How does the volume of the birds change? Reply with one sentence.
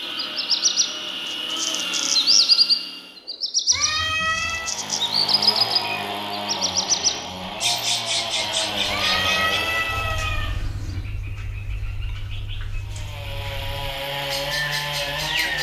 The loudness of the birds goes down.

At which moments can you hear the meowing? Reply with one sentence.
The meowing can be heard from 3.7 to 4.7 s and from 8.8 to 11.1 s.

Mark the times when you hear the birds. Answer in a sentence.
You can hear the birds from 0.0 to 15.5 s.